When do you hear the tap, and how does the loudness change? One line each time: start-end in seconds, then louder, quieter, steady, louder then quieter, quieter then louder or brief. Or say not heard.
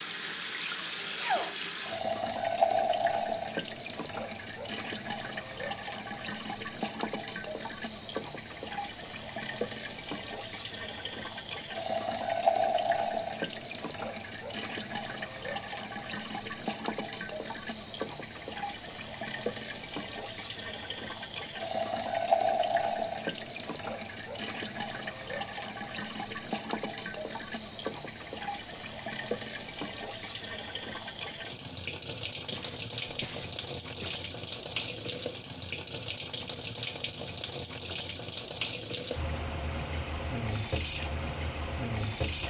0.0-42.4 steady.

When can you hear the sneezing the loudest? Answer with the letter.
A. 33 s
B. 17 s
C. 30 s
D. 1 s
D.